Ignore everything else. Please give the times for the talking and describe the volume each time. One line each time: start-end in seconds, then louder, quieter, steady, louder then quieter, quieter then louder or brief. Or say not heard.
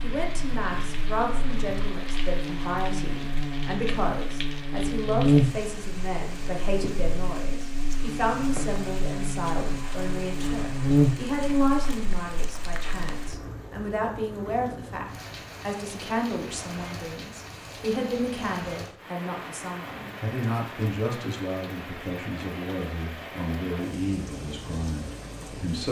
0.0-25.8 steady.